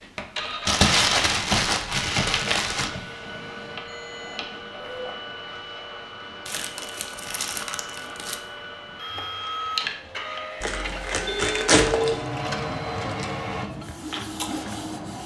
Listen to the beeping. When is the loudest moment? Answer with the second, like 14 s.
12 s.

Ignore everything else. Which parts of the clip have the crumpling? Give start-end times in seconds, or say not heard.
0.7-3.0, 6.5-8.4, 10.6-12.2.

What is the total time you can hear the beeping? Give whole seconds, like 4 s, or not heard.
2 s.